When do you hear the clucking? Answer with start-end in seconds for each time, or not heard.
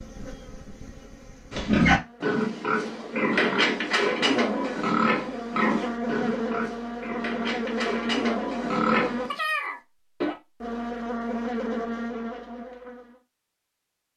not heard.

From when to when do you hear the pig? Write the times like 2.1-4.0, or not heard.
1.5-9.3.